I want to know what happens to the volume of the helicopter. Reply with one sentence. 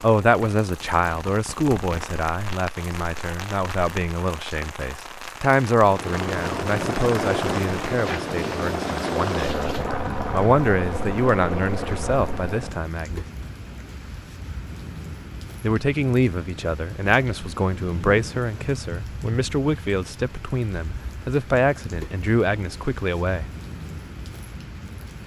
The volume of the helicopter stays about the same.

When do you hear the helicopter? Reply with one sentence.
You can hear the helicopter from 5.8 to 12.8 s.